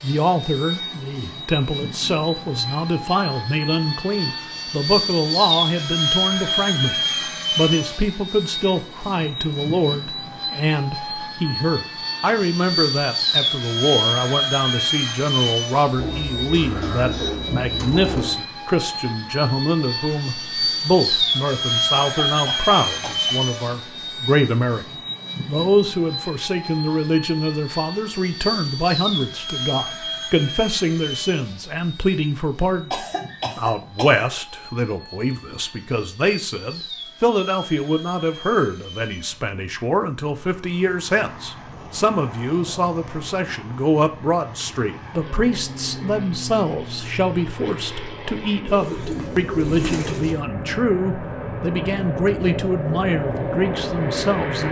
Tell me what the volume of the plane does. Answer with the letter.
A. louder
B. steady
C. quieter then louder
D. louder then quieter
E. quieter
C.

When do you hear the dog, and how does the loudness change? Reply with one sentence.
You can't hear the dog here.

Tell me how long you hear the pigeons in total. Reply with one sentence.
You can hear the pigeons for 4 seconds altogether.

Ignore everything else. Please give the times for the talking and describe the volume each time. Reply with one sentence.
The talking can be heard from 0.0 to 24.9 s, at a steady volume; and from 25.4 to 54.6 s, at a steady volume.